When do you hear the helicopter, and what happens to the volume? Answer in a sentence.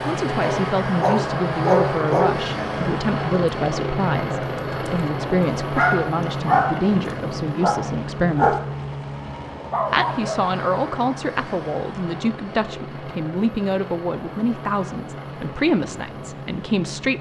You can hear the helicopter from 0.0 to 17.1 s, getting quieter.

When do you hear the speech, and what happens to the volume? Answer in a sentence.
The speech can be heard from 0.1 to 8.6 s, at a steady volume; and from 9.9 to 17.1 s, at a steady volume.